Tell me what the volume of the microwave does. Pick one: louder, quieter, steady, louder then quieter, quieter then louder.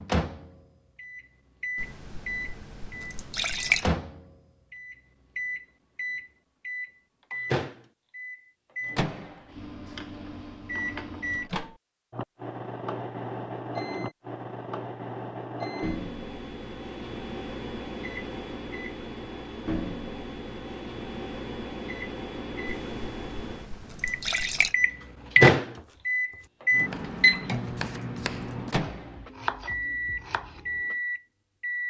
louder.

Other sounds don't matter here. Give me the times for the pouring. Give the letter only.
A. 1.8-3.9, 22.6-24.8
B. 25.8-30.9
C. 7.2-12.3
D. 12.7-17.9
A.